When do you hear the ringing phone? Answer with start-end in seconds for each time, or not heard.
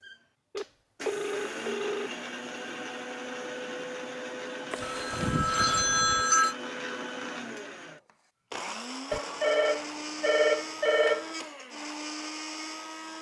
0.5-2.1, 4.7-6.5, 9.1-11.3.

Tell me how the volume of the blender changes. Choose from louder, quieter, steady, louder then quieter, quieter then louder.
steady.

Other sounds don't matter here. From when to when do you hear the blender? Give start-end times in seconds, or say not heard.
0.0-13.1.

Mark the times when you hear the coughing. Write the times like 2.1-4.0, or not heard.
not heard.